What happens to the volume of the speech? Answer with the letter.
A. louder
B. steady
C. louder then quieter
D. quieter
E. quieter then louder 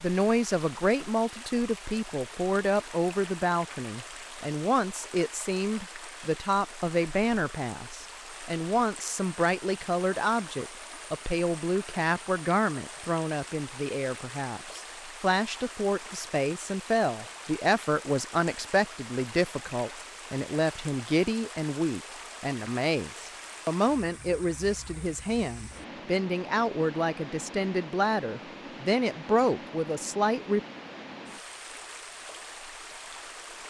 B.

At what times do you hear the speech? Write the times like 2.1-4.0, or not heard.
0.0-30.6.